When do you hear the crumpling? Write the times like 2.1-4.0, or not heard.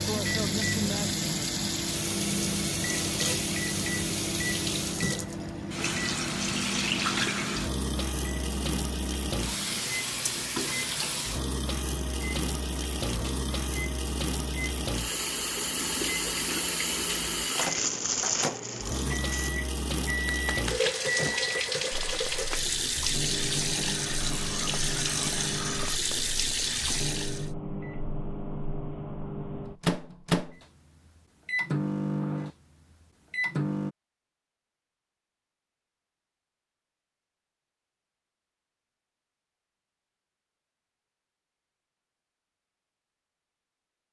17.6-19.5, 22.1-22.8.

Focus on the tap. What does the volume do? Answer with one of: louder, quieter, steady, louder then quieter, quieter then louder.
steady.